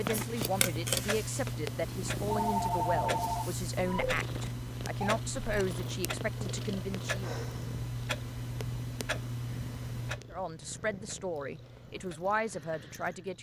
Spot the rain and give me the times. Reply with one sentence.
The rain can't be heard in this clip.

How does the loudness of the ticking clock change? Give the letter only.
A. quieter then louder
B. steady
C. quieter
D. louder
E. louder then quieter
C.